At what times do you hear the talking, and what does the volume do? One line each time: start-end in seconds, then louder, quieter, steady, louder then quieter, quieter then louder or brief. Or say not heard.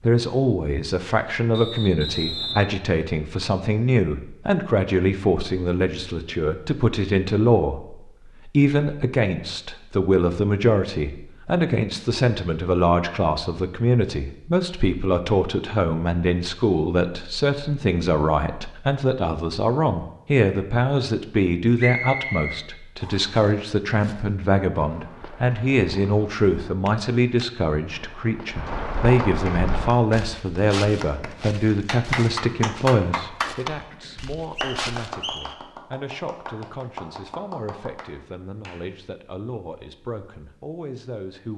0.0-41.5 quieter.